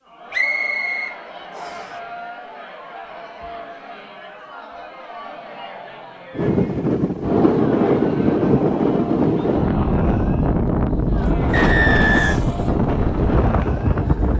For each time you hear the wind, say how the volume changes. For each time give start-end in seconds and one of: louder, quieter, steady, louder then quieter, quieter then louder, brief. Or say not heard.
6.3-14.3 steady.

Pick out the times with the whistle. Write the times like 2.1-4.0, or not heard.
0.3-1.9, 11.5-12.4.